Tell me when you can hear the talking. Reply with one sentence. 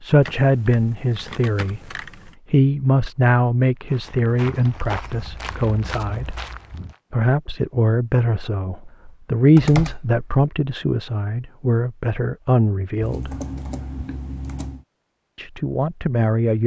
The talking can be heard from 0.0 to 6.4 s, from 7.1 to 13.3 s and from 15.3 to 16.6 s.